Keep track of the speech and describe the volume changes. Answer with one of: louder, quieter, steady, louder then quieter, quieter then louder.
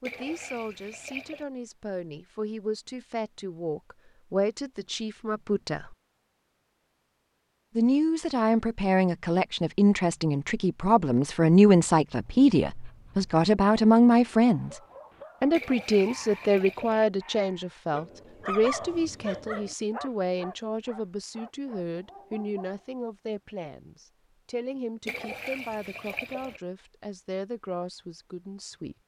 louder then quieter.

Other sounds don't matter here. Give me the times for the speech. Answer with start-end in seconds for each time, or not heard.
0.0-6.0, 7.8-14.8, 15.4-28.9.